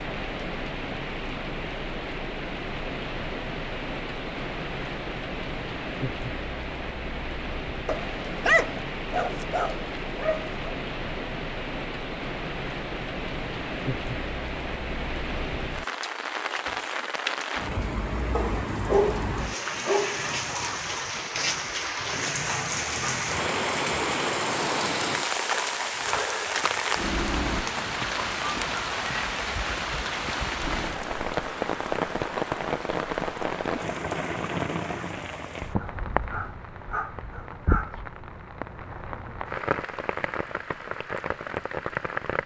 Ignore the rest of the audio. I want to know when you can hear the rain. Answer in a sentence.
The rain can be heard from 0.0 to 42.4 s.